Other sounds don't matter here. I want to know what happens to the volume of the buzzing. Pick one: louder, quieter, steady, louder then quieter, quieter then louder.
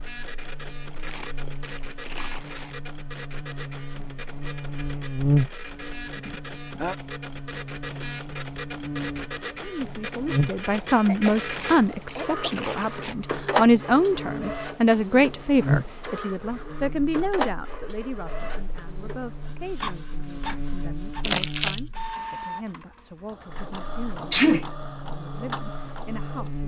quieter.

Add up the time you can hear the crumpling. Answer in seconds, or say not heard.
4 s.